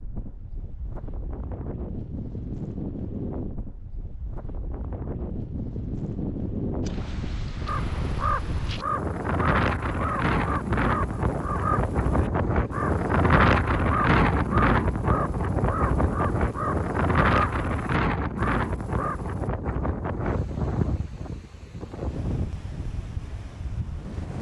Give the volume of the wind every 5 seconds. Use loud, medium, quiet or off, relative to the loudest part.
quiet, medium, loud, loud, medium.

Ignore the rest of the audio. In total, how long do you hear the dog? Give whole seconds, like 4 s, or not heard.
not heard.